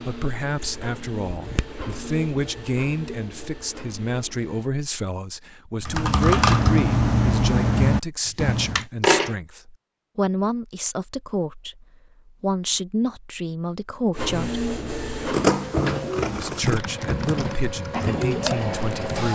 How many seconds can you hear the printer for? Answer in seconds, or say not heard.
10 s.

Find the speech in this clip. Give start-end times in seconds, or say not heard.
0.0-14.7, 16.4-19.3.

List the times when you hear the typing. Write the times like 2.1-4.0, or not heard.
5.8-8.8, 16.1-19.3.